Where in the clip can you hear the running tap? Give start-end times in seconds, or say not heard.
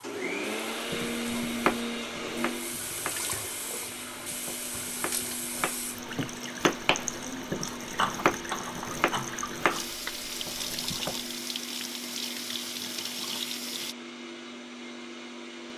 0.0-13.9.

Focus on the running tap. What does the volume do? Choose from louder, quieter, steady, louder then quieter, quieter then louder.
louder.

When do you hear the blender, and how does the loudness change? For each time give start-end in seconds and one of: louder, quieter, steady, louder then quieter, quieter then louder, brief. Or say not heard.
0.0-15.7 quieter.